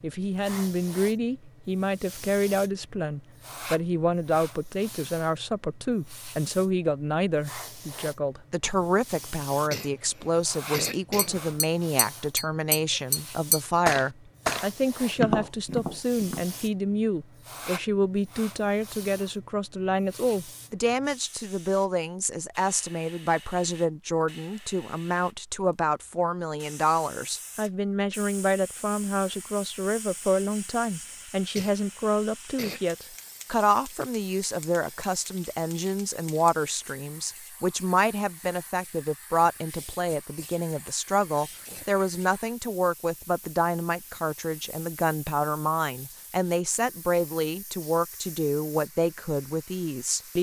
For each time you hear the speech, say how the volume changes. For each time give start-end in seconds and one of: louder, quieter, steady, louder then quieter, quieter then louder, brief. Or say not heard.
0.0-50.3 steady.